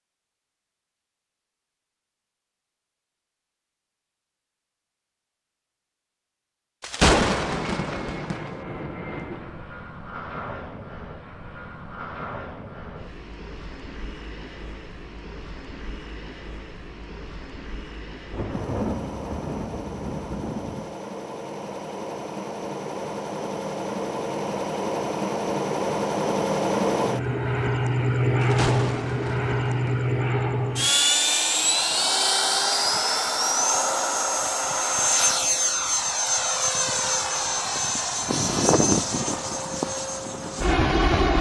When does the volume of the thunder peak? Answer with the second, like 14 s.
7 s.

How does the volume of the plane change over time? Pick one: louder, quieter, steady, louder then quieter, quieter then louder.
louder.